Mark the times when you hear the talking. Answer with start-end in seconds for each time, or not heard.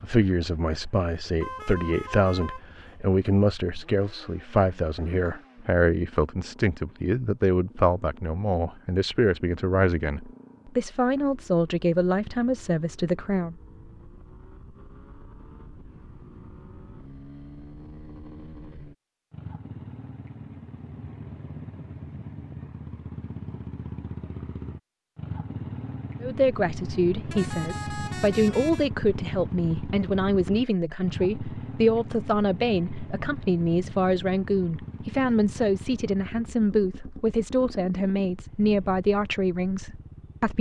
0.0-13.6, 26.2-40.5.